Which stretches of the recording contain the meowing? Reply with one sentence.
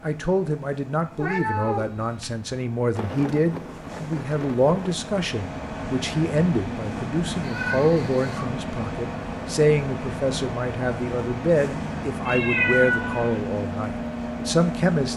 The meowing can be heard from 1.1 to 2.5 s, from 7.4 to 8.4 s and from 12.2 to 13.4 s.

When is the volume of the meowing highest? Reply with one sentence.
The volume of the meowing peaks at 13 seconds.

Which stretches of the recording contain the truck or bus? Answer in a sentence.
The truck or bus can be heard from 0.0 to 15.1 s.